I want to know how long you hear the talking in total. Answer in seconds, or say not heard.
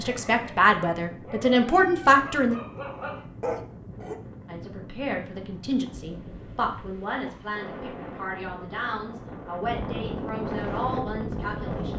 10 s.